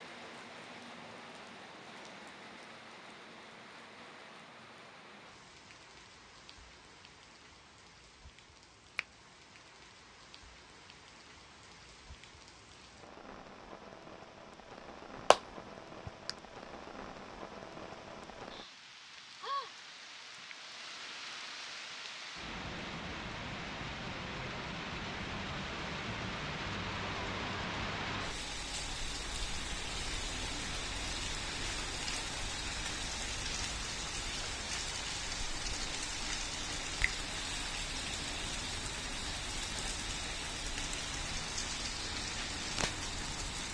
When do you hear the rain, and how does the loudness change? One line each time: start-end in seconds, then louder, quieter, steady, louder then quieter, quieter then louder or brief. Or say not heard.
0.0-43.7 louder.